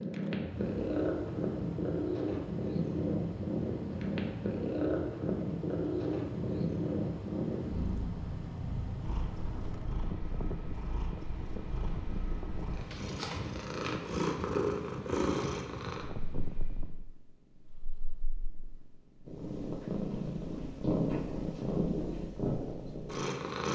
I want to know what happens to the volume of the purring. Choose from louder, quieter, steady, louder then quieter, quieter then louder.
quieter then louder.